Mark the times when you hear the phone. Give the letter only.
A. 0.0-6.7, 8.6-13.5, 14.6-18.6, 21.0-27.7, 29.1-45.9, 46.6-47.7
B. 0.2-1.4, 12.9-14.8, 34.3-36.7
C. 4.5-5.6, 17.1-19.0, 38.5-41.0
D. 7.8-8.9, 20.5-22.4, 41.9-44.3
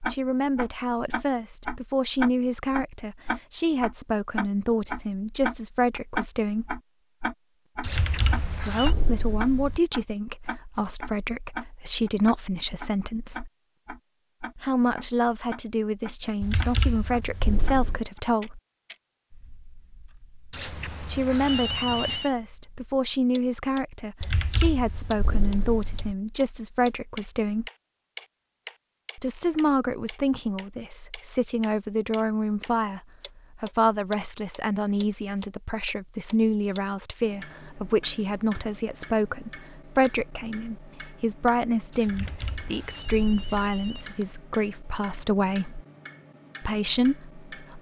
D.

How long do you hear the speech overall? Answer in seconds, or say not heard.
40 s.